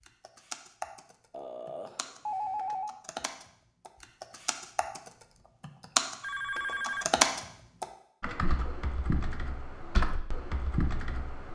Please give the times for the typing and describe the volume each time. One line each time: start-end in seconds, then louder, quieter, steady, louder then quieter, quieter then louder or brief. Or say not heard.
0.0-11.5 louder then quieter.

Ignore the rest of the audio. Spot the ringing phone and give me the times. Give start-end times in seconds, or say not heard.
1.3-3.0, 6.2-7.0.